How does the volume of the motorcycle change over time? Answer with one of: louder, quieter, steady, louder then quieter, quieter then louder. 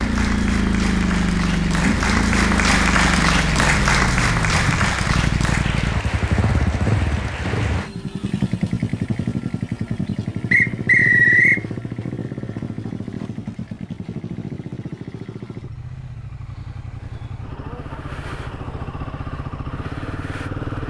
quieter.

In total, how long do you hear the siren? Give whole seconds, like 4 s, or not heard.
not heard.